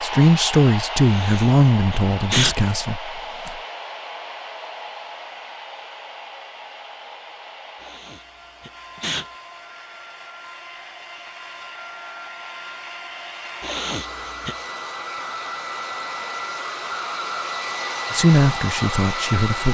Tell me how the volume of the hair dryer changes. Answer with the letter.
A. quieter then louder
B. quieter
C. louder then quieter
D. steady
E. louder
A.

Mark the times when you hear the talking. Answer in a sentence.
You can hear the talking from 0.0 to 3.5 s and from 18.1 to 19.6 s.